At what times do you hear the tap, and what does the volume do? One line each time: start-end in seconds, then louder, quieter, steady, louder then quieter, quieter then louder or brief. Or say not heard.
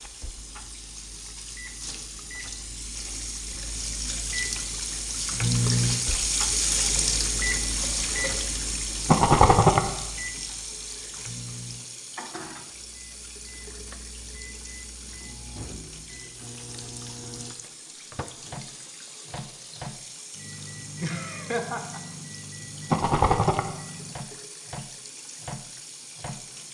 0.0-26.6 louder then quieter.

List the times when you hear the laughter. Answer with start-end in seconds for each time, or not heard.
21.0-22.0.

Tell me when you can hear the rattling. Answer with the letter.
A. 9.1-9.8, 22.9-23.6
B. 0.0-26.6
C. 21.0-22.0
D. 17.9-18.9
A.